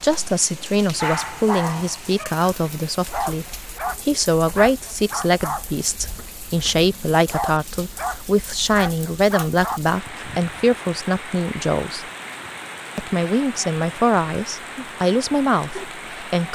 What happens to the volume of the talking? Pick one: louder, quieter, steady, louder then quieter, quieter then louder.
steady.